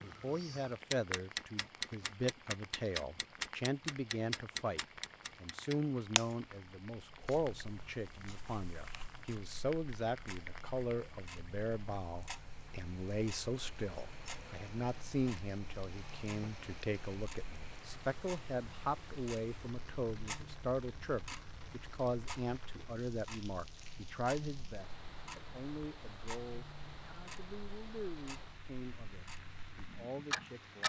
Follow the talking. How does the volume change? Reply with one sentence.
The loudness of the talking goes down.